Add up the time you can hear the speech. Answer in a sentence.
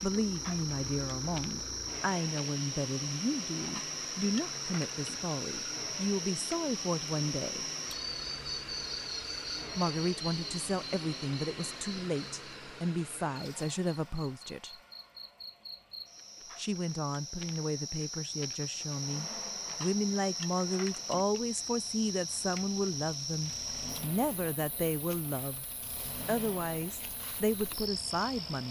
The speech can be heard for 24 seconds in total.